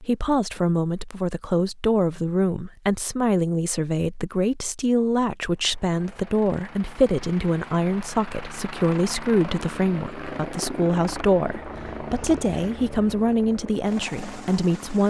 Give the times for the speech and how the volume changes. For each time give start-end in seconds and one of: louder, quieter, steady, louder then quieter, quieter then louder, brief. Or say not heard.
0.0-15.0 steady.